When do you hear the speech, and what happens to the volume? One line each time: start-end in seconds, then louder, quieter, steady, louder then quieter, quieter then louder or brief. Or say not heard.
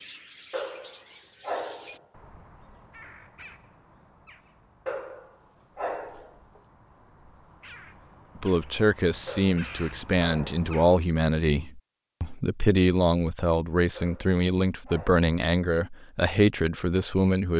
8.3-17.5 steady.